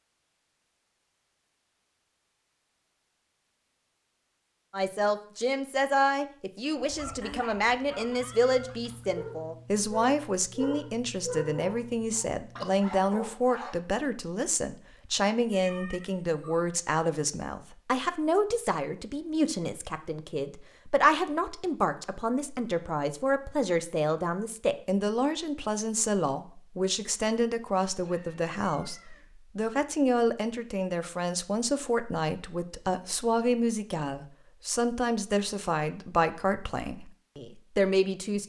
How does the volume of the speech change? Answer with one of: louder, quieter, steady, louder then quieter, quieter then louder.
steady.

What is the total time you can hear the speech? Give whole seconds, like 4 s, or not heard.
33 s.